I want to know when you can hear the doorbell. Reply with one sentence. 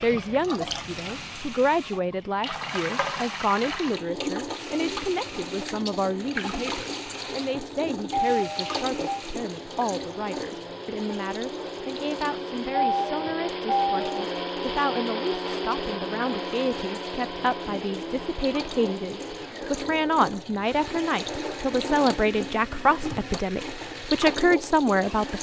You can hear the doorbell from 8.1 to 9.2 s and from 12.7 to 14.2 s.